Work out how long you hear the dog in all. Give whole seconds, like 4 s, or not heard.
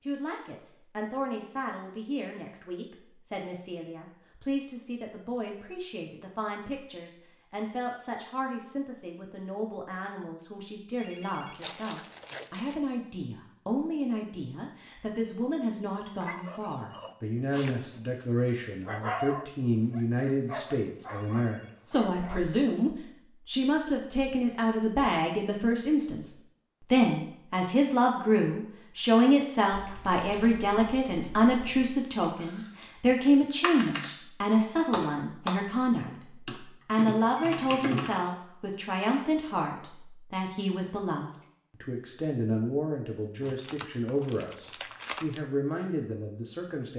6 s.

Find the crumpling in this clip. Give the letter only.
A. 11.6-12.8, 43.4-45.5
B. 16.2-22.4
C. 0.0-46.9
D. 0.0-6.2
A.